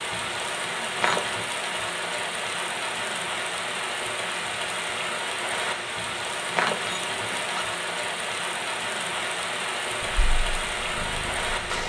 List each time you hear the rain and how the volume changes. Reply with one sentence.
The rain can be heard from 0.0 to 11.8 s, at a steady volume.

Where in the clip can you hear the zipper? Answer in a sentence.
The zipper can be heard from 0.9 to 1.4 s and from 6.5 to 7.7 s.